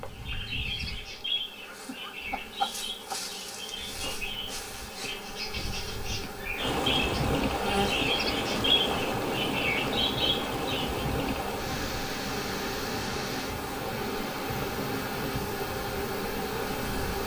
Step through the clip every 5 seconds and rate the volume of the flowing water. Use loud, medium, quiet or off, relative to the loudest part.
off, loud, loud, medium.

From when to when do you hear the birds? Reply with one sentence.
You can hear the birds from 0.0 to 11.0 s.